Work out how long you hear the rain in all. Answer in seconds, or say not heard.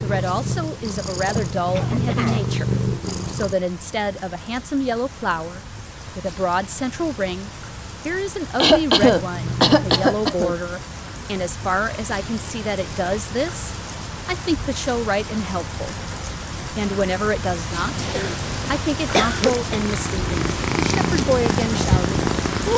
23 s.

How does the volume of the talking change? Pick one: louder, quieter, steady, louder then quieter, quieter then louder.
steady.